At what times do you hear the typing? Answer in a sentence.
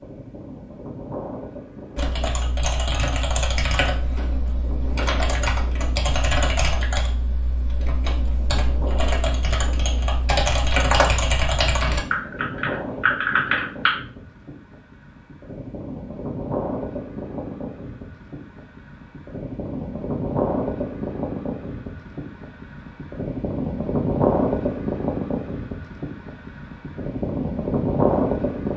The typing can be heard from 1.9 to 13.9 s.